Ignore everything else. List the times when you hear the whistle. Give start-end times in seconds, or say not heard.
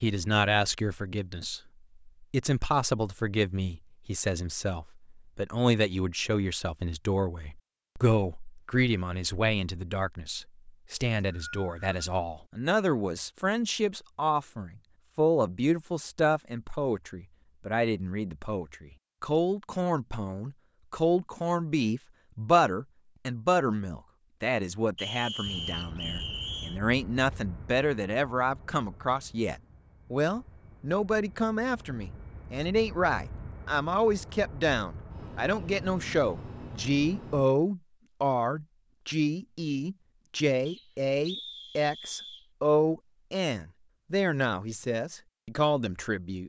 11.2-11.8, 24.9-26.8, 40.6-42.5.